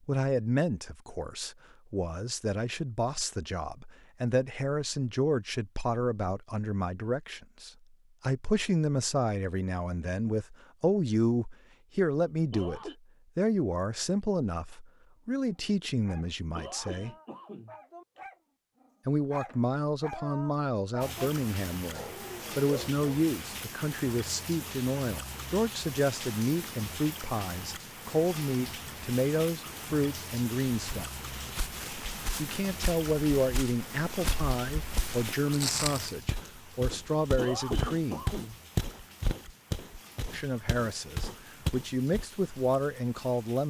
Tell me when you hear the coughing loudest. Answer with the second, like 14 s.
38 s.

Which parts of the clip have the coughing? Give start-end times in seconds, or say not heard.
12.5-12.9, 16.3-18.2, 37.4-38.6.